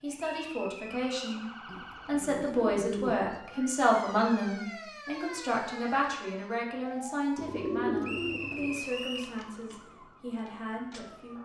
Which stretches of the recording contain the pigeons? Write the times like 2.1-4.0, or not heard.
1.6-3.6, 7.3-8.8.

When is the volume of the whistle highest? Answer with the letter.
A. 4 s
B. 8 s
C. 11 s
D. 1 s
B.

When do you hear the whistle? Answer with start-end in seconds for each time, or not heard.
0.1-1.4, 8.0-9.3.